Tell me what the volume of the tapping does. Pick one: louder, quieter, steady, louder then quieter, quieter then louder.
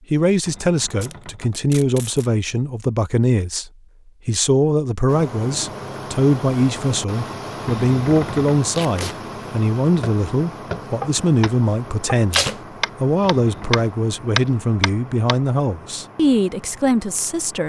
quieter then louder.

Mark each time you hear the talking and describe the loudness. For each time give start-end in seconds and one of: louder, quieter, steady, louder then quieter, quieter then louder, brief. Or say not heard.
0.1-17.6 steady.